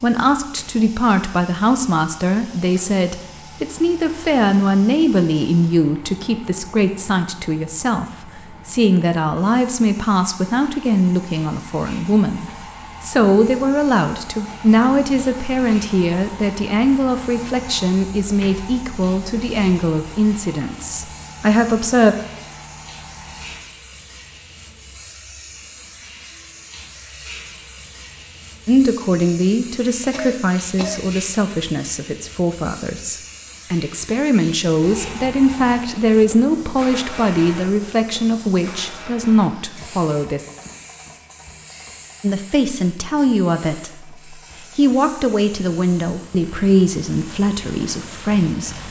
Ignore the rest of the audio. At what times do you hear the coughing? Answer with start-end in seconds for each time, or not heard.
30.1-31.1.